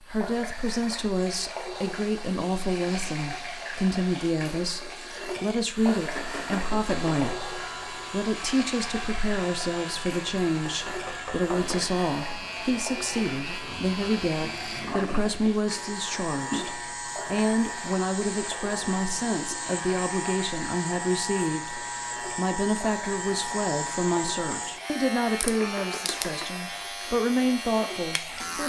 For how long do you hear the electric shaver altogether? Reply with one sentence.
You can hear the electric shaver for 23 seconds altogether.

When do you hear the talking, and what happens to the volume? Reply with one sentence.
You can hear the talking from 0.1 to 28.6 s, at a steady volume.